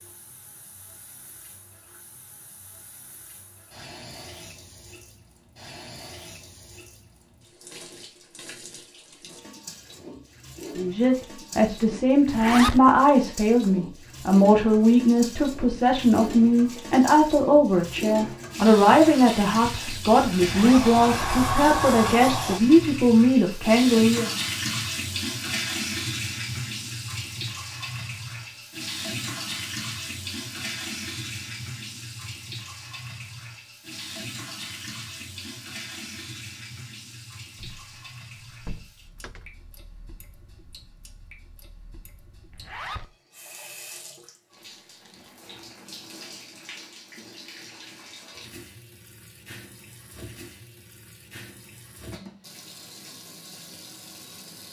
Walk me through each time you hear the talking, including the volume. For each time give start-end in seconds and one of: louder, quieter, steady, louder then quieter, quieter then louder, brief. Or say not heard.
10.8-24.3 steady.